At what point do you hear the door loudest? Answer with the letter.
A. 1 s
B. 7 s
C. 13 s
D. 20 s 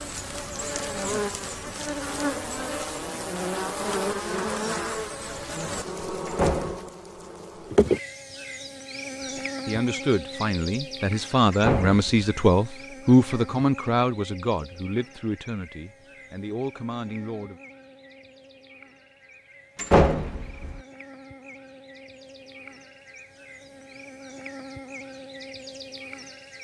D.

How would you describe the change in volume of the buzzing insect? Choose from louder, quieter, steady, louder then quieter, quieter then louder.
quieter then louder.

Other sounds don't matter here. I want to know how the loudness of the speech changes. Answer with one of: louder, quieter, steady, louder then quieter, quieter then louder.
louder then quieter.